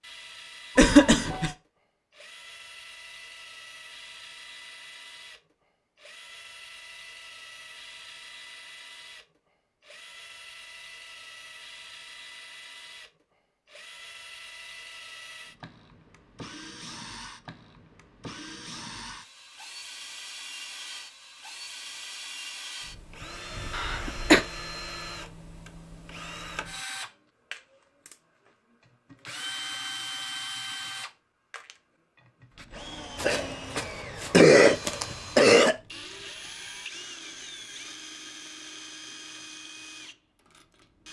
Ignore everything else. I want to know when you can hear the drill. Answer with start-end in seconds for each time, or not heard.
0.0-41.0.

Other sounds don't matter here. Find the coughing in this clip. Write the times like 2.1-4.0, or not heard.
0.8-1.5, 23.7-24.4, 33.1-35.8.